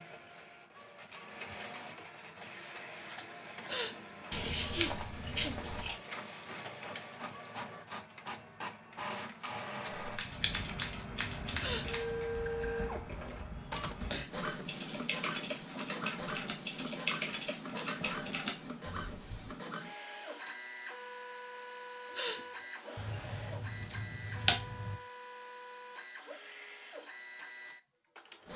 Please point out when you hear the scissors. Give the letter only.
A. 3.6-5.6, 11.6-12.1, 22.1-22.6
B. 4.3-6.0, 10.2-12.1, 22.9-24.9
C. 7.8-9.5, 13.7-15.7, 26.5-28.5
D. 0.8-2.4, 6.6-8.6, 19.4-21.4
B.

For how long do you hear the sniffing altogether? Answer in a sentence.
You can hear the sniffing for 3 seconds altogether.